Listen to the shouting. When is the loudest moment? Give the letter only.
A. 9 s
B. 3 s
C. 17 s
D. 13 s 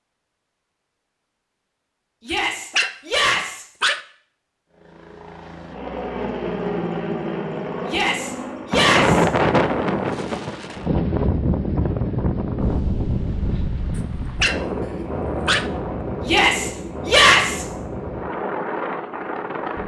C.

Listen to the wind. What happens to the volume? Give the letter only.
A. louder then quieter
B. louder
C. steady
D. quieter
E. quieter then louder
D.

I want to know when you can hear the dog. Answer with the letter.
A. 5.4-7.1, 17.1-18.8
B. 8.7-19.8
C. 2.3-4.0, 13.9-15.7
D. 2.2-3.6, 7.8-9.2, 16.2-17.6
C.